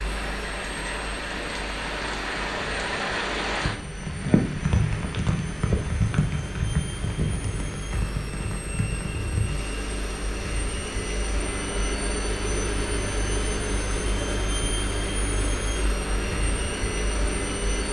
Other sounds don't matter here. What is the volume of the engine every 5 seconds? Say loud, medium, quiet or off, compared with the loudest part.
medium, medium, loud, loud.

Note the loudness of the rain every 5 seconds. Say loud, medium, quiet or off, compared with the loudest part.
loud, loud, medium, medium.